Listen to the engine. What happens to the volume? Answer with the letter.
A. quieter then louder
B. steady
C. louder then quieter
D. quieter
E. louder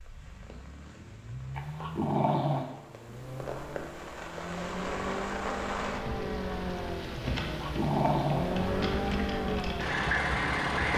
E.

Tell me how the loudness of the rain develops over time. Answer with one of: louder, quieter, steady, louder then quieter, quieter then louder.
louder.